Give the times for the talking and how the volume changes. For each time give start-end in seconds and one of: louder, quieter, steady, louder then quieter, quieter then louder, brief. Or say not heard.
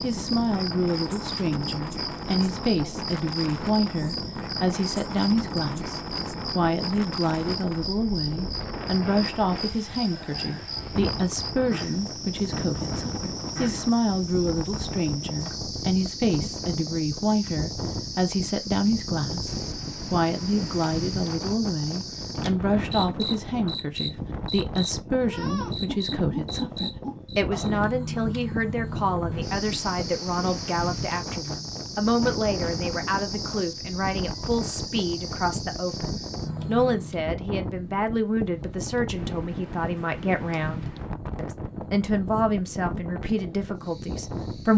0.0-44.7 steady.